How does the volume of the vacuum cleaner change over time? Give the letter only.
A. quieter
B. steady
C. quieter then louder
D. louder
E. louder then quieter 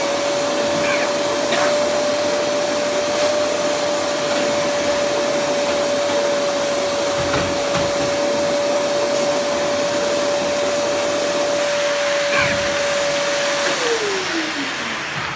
B.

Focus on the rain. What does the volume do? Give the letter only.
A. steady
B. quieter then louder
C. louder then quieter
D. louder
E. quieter
A.